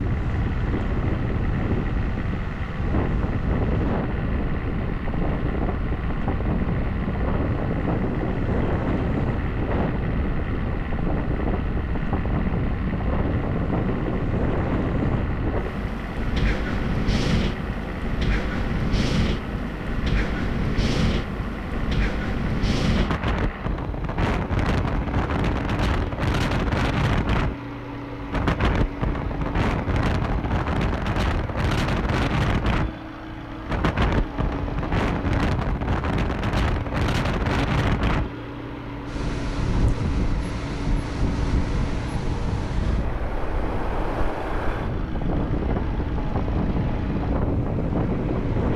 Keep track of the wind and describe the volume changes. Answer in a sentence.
The volume of the wind stays about the same.